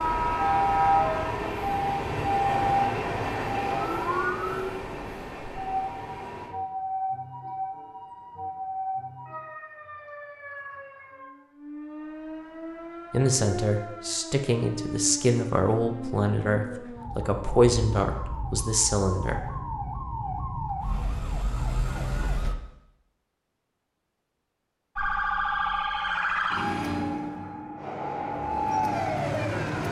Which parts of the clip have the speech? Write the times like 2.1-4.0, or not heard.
13.1-19.4.